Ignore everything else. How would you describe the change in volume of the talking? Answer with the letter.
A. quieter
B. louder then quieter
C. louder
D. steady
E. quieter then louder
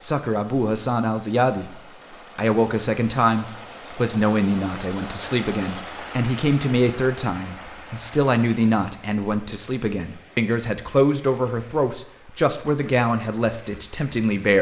D.